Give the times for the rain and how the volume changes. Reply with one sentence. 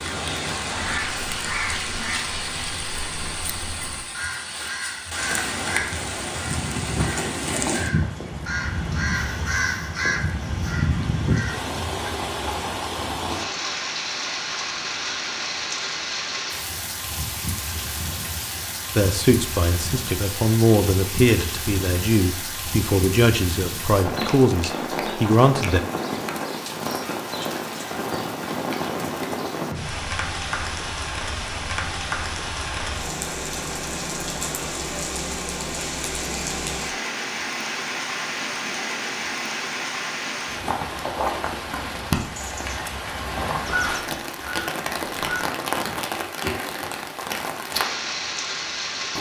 You can hear the rain from 0.0 to 49.1 s, at a steady volume.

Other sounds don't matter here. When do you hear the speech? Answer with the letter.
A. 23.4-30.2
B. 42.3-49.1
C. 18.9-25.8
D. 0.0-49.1
C.